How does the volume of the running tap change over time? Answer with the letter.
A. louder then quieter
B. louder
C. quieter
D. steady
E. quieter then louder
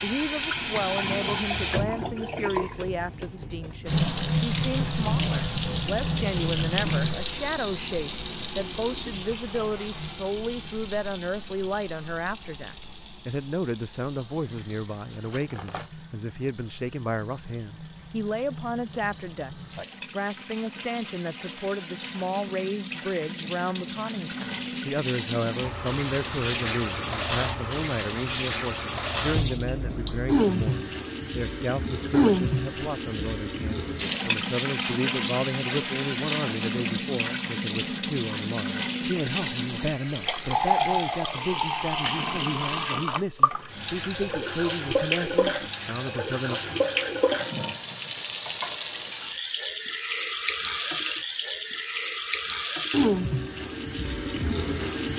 E.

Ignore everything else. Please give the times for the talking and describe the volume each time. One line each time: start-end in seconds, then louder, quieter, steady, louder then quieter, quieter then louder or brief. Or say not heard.
0.0-46.6 steady.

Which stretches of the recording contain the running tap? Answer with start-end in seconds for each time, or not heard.
0.0-55.1.